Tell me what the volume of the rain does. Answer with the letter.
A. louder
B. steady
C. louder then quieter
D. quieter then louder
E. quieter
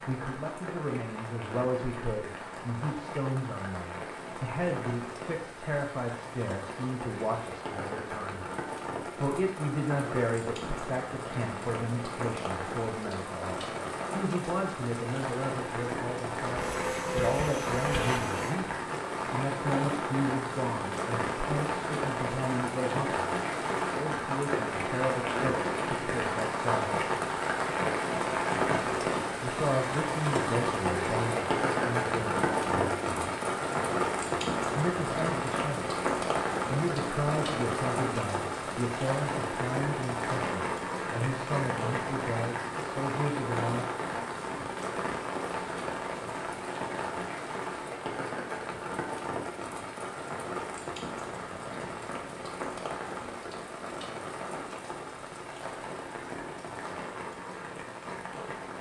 C.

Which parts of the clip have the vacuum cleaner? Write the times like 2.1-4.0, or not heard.
16.6-18.6.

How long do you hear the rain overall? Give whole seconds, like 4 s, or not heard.
59 s.